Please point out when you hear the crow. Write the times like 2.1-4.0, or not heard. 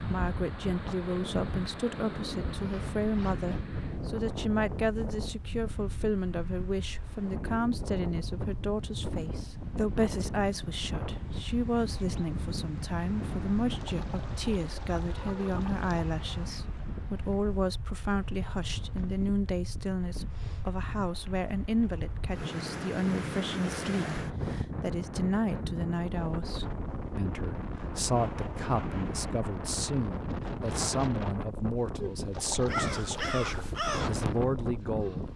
32.6-35.3.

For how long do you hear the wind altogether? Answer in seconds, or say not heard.
35 s.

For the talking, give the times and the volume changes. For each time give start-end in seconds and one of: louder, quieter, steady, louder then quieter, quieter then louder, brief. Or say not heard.
0.1-35.3 steady.